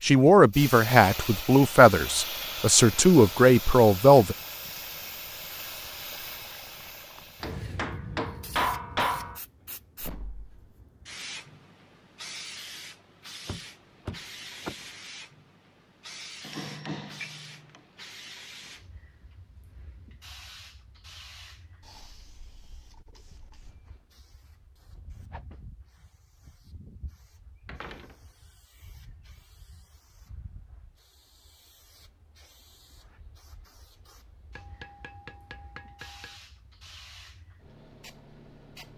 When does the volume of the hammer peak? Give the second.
9 s.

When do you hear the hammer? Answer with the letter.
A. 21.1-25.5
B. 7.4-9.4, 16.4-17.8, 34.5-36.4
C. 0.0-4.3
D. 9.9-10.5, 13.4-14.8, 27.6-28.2
B.